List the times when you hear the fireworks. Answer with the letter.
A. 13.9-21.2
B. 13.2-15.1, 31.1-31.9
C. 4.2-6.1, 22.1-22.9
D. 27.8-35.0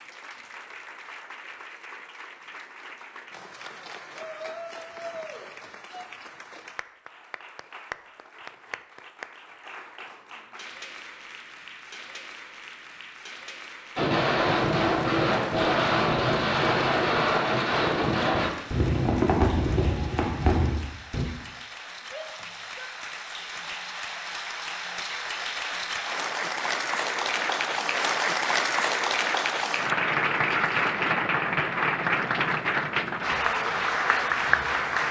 A.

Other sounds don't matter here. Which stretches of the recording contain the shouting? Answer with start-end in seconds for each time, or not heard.
4.2-6.1, 22.1-22.9.